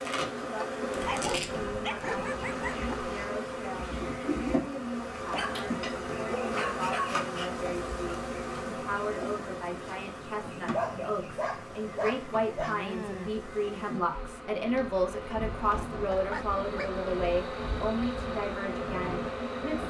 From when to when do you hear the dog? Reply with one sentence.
You can hear the dog from 0.9 to 3.0 s, from 5.3 to 7.2 s, from 10.7 to 13.3 s and from 16.1 to 17.0 s.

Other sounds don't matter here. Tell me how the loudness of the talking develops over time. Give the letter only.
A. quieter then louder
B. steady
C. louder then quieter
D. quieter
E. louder
E.